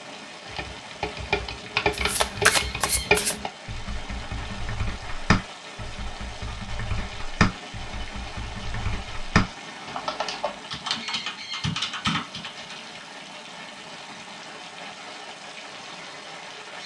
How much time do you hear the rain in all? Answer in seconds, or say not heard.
17 s.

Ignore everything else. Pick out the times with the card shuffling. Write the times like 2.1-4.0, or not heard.
1.9-3.4.